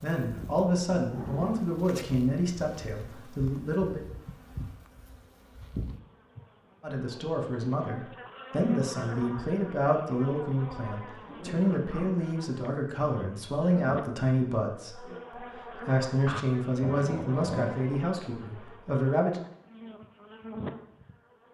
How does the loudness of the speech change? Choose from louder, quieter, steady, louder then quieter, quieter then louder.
steady.